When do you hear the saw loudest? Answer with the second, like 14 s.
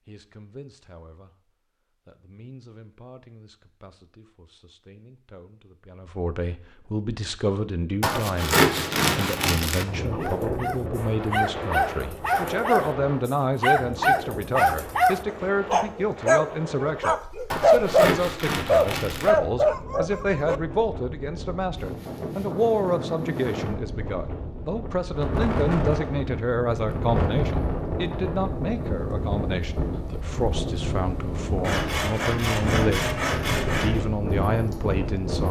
9 s.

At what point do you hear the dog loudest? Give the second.
18 s.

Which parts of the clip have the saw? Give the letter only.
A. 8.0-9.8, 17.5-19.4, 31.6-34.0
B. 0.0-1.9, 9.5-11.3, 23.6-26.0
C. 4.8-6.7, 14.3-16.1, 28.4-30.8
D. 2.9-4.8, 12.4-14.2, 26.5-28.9
A.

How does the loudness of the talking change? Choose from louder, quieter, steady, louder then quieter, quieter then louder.
louder.